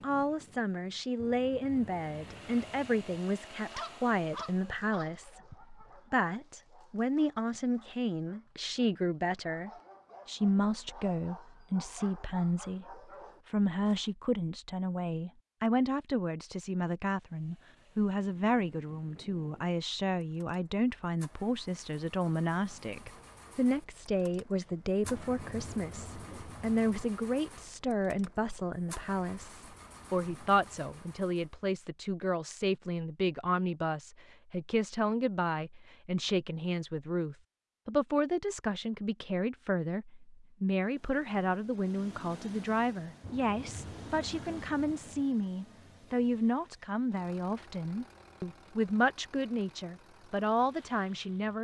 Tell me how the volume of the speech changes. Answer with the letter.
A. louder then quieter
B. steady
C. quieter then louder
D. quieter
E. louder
B.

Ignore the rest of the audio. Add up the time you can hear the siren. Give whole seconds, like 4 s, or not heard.
not heard.